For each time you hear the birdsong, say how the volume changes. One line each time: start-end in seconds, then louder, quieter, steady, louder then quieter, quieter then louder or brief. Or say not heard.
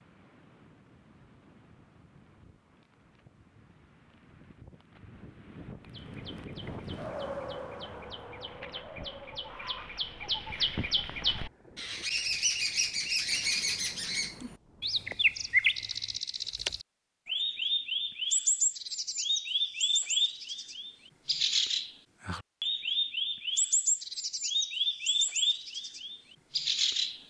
5.8-27.2 louder.